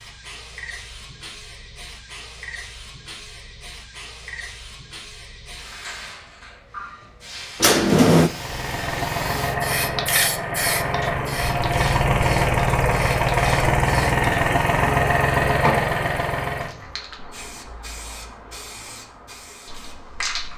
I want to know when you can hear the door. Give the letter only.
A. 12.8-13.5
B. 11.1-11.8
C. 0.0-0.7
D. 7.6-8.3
D.